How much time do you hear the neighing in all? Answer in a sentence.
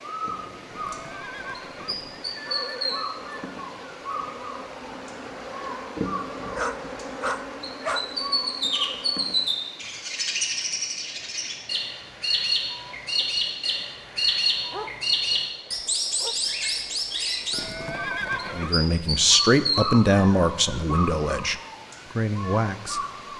You can hear the neighing for 4 seconds altogether.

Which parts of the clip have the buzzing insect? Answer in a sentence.
The buzzing insect can be heard from 0.0 to 9.5 s.